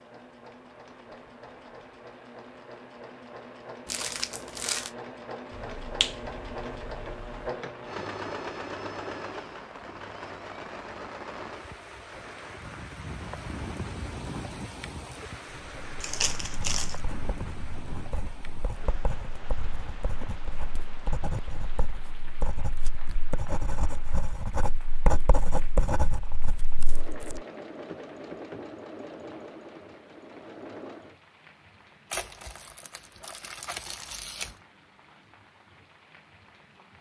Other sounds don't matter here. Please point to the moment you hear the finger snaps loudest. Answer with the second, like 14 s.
6 s.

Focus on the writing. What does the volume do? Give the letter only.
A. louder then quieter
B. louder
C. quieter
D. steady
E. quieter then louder
B.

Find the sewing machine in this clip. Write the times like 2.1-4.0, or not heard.
0.0-16.2, 26.8-31.1.